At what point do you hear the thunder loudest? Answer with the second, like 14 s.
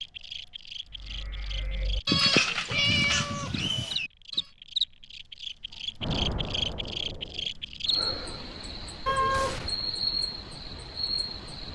6 s.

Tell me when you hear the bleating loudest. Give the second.
2 s.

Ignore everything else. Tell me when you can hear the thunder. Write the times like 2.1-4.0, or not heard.
6.0-7.5.